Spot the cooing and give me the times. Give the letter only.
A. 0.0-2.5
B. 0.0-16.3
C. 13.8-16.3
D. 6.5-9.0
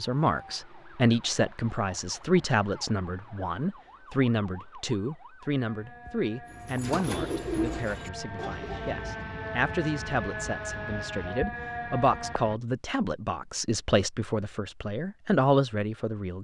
D.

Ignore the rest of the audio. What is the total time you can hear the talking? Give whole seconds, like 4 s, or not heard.
16 s.